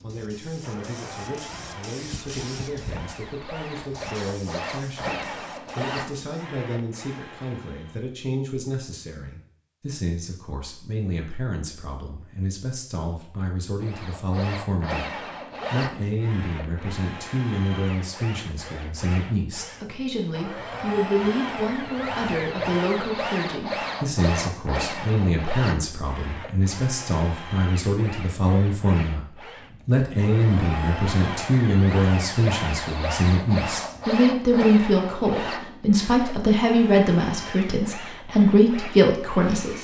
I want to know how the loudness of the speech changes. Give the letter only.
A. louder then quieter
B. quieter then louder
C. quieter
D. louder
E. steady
D.